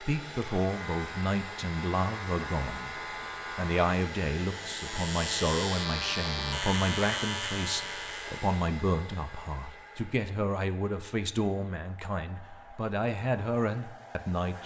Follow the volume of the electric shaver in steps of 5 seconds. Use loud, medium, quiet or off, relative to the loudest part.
medium, loud, off.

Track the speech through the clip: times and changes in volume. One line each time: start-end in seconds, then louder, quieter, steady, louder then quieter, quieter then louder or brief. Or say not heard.
0.0-3.0 brief
3.5-14.6 steady.